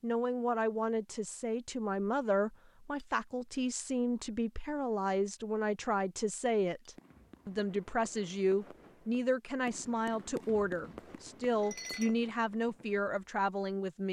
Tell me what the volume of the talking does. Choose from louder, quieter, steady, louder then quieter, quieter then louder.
steady.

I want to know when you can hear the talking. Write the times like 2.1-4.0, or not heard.
0.0-14.0.